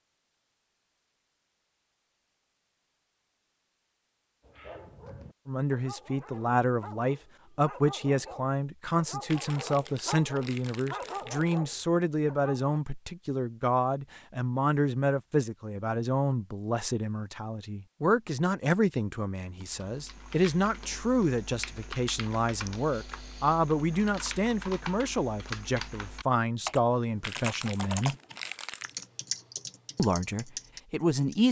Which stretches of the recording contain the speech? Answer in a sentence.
The speech can be heard from 5.5 to 28.1 s and from 29.9 to 31.4 s.